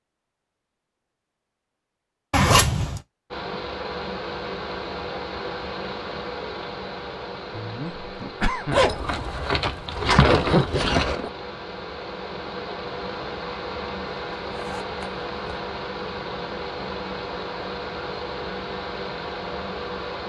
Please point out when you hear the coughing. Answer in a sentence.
The coughing can be heard from 7.5 to 8.9 s.